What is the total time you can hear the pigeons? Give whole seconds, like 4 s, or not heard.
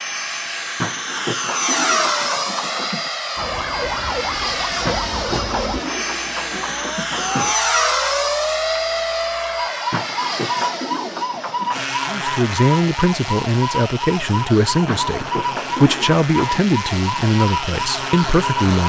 9 s.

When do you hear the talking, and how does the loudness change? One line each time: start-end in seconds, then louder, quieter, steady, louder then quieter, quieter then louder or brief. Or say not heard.
12.1-18.8 steady.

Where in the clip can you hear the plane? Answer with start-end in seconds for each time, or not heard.
0.0-18.8.